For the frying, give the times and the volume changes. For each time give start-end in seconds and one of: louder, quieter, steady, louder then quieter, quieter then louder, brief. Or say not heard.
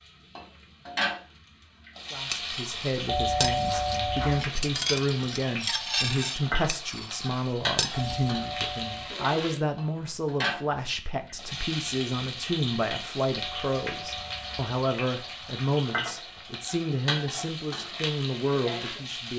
0.0-19.3 steady.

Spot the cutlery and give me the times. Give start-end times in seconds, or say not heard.
2.3-8.3.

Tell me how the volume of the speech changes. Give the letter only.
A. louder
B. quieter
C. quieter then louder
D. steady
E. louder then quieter
D.